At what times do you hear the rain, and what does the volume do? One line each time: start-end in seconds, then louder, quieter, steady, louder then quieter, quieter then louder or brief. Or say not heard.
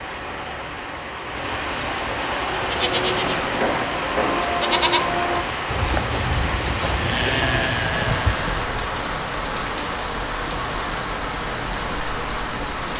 0.0-12.9 steady.